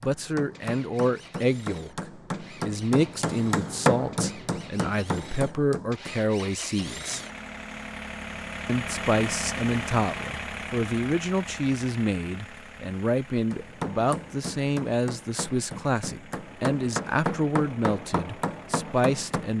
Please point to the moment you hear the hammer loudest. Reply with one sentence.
The loudest moment of the hammer is at 4 seconds.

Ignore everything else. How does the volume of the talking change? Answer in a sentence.
The volume of the talking stays about the same.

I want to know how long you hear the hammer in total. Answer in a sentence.
You can hear the hammer for 12 seconds altogether.